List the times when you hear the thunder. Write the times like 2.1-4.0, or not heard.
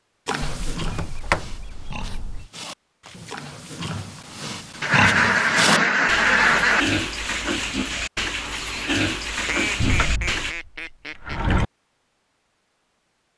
not heard.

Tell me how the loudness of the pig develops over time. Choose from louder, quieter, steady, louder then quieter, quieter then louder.
louder.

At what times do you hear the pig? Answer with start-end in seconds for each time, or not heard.
0.2-10.6.